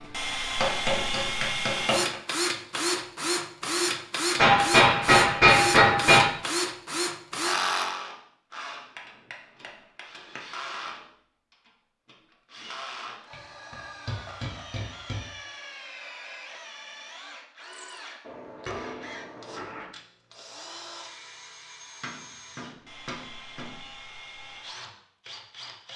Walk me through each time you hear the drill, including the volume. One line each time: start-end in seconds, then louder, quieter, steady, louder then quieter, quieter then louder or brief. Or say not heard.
0.0-25.9 quieter.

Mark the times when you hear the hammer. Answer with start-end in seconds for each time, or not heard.
0.6-2.1, 4.3-6.2, 8.9-10.8, 13.3-15.2, 18.2-19.9, 22.0-23.8.